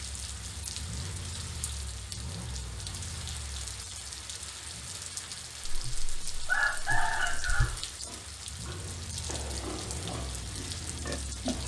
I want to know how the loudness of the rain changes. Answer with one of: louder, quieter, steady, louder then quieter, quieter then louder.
steady.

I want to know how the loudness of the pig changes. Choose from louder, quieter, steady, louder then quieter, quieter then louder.
louder.